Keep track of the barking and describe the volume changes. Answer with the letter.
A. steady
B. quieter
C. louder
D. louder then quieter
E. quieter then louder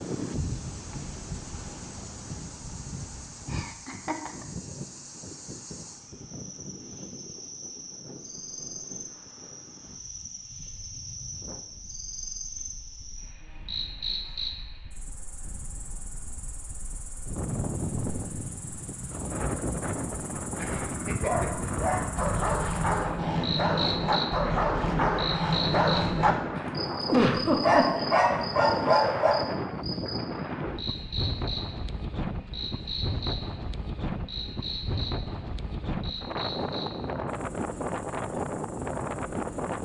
C.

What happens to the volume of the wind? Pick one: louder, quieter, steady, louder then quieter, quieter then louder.
quieter then louder.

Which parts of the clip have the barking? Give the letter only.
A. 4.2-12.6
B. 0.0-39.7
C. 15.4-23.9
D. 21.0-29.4
D.